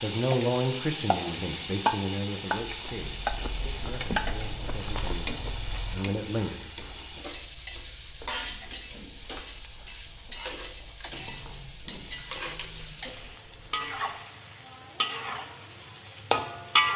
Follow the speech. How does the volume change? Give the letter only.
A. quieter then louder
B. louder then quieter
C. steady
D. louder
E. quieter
A.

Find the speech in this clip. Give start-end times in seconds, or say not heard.
0.0-6.7.